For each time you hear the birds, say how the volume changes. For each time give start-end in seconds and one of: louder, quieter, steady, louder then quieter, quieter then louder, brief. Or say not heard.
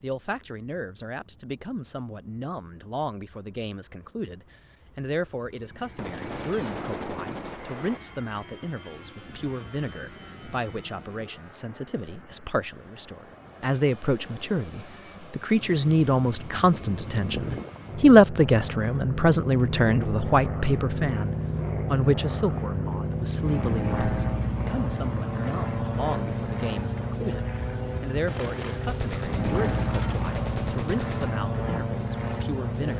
not heard.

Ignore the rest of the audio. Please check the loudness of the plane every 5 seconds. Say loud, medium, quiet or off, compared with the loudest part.
quiet, quiet, quiet, medium, loud, loud, loud.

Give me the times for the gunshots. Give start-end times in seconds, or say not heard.
6.0-8.0, 28.2-31.3.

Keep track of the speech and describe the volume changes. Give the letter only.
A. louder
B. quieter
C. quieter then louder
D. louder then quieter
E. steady
D.